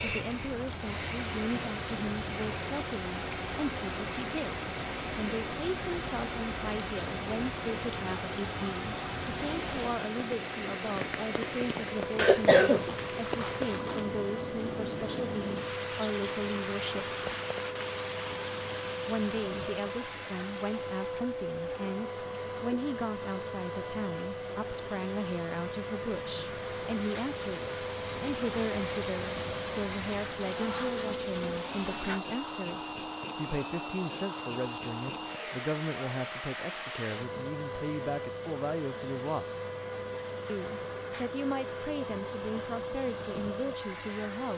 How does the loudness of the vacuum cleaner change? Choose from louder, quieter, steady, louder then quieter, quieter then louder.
steady.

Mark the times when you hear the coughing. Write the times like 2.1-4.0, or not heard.
12.2-14.0.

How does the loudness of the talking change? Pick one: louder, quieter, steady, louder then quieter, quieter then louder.
steady.